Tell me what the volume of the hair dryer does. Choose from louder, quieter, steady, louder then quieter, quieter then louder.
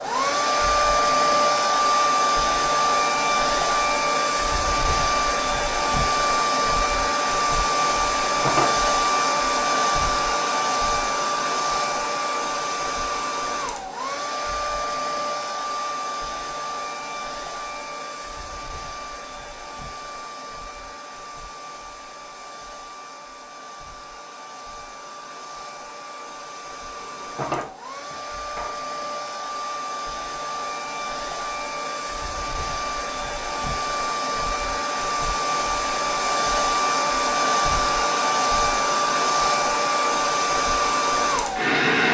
quieter then louder.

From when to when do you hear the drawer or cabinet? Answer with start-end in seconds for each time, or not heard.
8.2-8.8, 27.0-28.7.